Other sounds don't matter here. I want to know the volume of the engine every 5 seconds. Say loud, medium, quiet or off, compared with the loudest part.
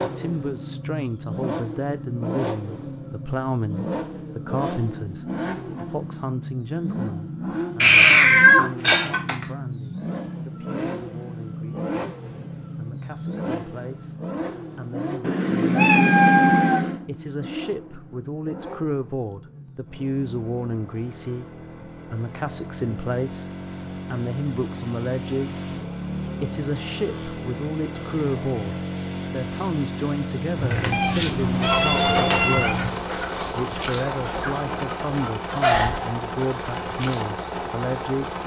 loud, loud, loud, medium, medium, loud, loud, loud.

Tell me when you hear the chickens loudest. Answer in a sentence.
The volume of the chickens peaks at 36 seconds.